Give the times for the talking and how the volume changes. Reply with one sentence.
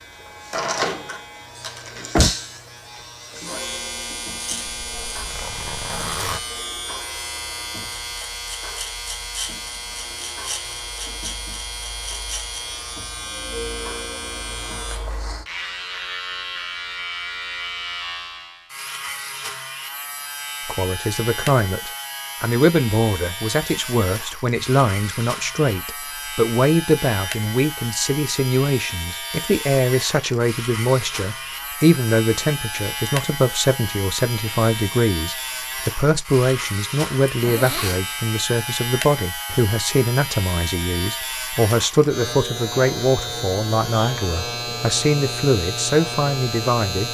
You can hear the talking from 20.6 to 47.1 s, at a steady volume.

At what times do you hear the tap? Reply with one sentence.
The tap can't be heard in this clip.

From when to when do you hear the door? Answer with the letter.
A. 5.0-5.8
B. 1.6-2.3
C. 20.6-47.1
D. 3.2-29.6
B.